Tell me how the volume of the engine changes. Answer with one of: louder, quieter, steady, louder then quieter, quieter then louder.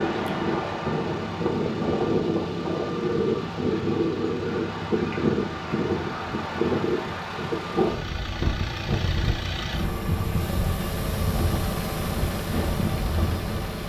louder.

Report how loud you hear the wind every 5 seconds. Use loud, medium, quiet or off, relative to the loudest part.
loud, loud, medium.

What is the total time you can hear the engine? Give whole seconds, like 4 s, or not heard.
14 s.